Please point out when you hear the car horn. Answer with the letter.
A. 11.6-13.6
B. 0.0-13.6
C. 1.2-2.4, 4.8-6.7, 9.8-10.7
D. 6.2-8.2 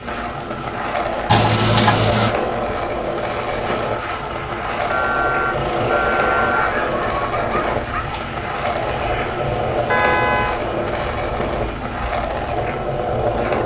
C.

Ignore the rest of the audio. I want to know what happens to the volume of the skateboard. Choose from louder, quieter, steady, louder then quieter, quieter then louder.
steady.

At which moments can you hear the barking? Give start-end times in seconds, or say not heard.
6.2-8.2.